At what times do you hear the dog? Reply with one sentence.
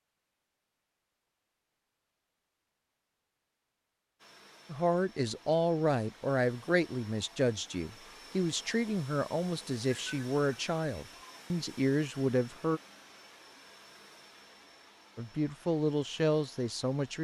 You can't hear the dog here.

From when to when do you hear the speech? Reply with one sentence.
The speech can be heard from 4.7 to 12.8 s and from 15.2 to 17.1 s.